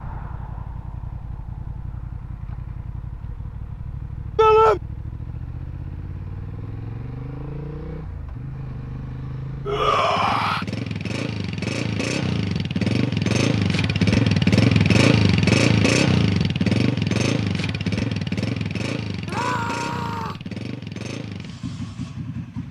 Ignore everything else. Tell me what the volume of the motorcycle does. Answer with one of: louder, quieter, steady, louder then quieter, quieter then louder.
louder then quieter.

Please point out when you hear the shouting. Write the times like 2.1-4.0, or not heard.
4.3-4.8, 9.7-10.7, 19.2-20.4.